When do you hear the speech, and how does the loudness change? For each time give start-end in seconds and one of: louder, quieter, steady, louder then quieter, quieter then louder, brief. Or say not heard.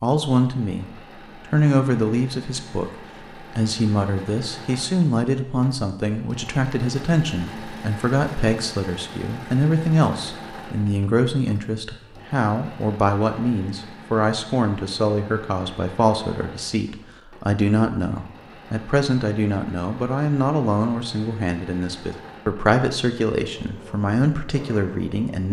0.0-25.4 steady.